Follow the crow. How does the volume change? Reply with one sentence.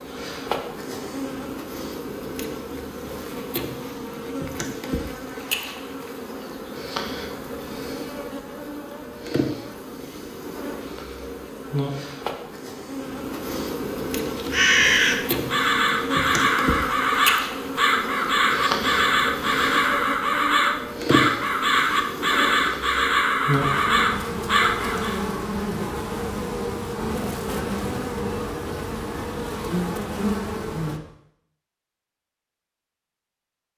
The loudness of the crow stays about the same.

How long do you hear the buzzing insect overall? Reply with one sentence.
You can hear the buzzing insect for 31 seconds altogether.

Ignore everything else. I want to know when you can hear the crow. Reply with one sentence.
The crow can be heard from 14.3 to 25.2 s.